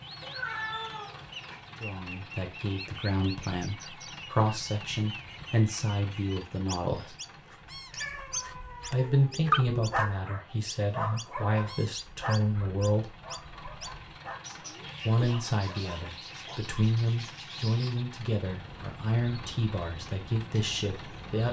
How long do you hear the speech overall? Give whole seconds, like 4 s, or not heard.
16 s.